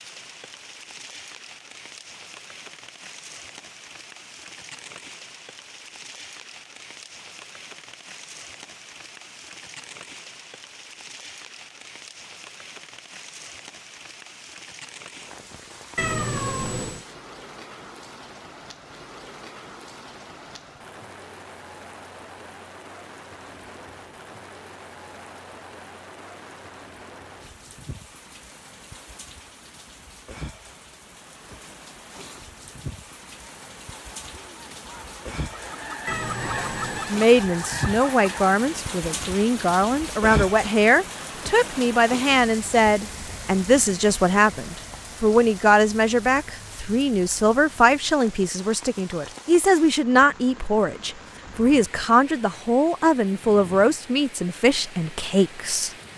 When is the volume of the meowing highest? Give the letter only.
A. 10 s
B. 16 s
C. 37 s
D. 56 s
B.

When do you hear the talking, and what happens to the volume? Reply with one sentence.
The talking can be heard from 37.0 to 55.9 s, at a steady volume.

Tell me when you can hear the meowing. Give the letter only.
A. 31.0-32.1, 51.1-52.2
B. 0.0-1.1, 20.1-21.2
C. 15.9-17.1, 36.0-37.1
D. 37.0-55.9
C.